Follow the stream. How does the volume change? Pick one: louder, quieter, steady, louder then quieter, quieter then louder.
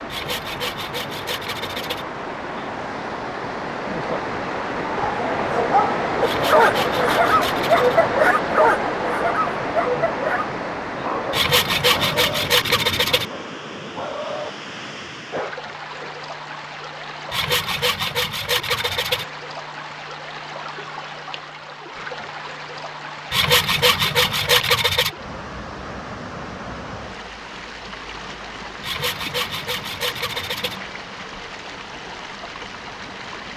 quieter.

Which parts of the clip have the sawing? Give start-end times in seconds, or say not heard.
0.1-2.0, 6.2-8.0, 11.3-13.2, 17.3-19.2, 23.3-25.1, 28.8-30.8.